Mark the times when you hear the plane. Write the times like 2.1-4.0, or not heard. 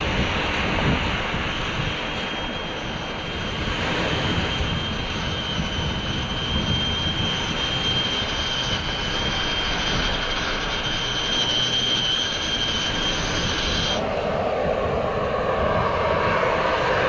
0.1-17.0.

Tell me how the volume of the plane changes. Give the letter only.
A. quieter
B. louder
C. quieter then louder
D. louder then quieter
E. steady
B.